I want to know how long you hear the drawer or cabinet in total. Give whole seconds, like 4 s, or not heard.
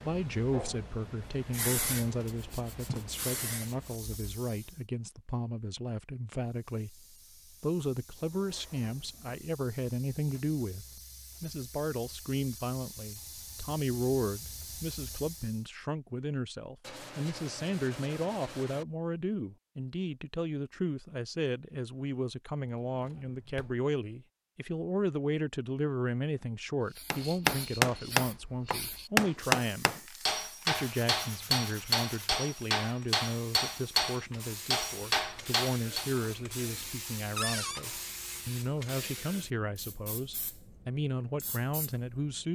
3 s.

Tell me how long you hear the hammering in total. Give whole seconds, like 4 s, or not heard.
9 s.